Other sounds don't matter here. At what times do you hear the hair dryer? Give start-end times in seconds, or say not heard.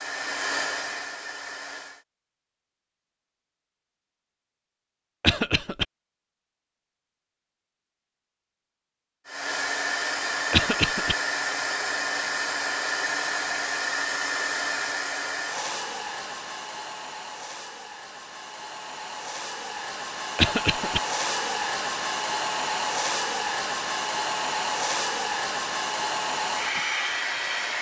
0.0-2.0, 9.2-27.7.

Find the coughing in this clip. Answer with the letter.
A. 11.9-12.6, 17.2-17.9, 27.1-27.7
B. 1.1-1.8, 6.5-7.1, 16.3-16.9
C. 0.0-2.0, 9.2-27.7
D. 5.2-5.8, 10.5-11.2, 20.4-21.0
D.